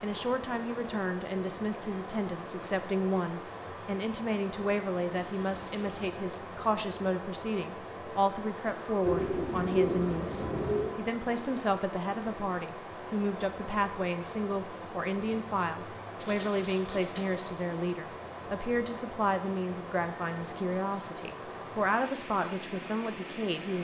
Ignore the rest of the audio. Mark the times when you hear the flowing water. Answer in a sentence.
The flowing water can be heard from 0.0 to 23.7 s.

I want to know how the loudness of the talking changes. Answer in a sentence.
The loudness of the talking stays about the same.